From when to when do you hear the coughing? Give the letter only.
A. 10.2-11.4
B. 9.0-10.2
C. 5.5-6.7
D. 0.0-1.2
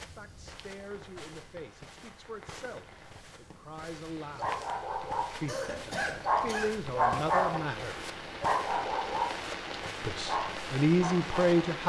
C.